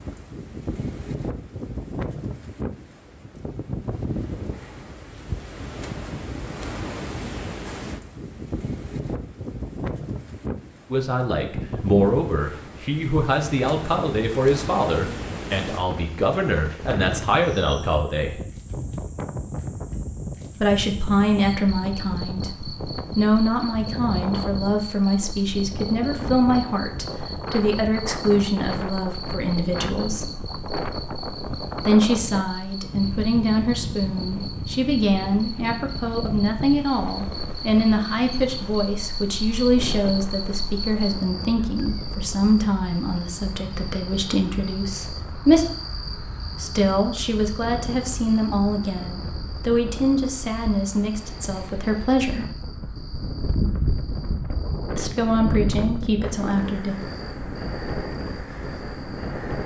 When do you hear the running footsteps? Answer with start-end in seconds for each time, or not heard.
not heard.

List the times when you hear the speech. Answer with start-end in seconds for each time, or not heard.
10.9-18.4, 20.6-30.4, 31.9-45.6, 46.6-52.5, 55.0-57.0.